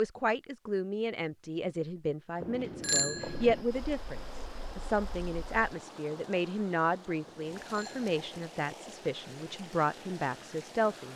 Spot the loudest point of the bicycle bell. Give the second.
3 s.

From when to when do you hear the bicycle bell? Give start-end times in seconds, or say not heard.
2.4-3.6, 7.2-8.5.